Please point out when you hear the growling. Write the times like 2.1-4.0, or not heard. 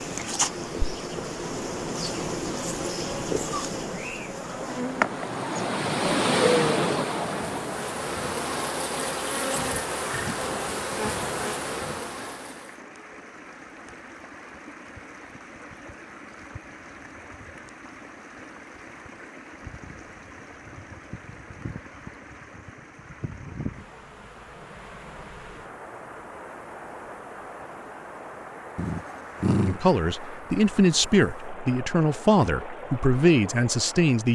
6.1-7.0, 28.8-29.8.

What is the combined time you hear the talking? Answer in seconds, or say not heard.
5 s.